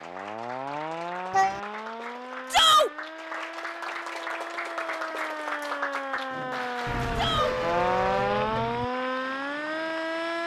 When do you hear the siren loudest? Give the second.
8 s.